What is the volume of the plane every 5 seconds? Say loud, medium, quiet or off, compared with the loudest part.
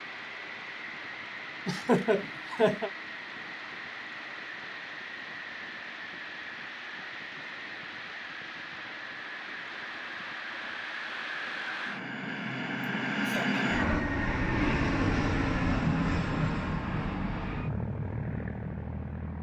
medium, medium, loud, loud.